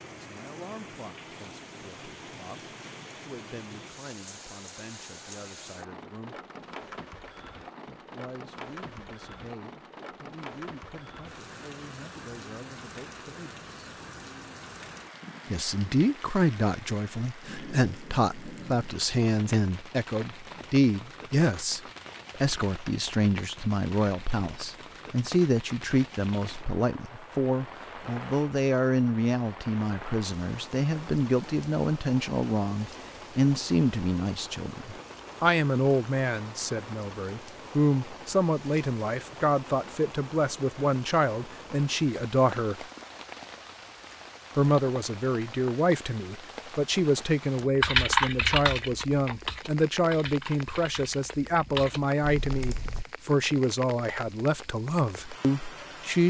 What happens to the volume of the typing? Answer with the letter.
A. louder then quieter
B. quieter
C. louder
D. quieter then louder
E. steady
D.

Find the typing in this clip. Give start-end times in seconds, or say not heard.
47.8-53.0.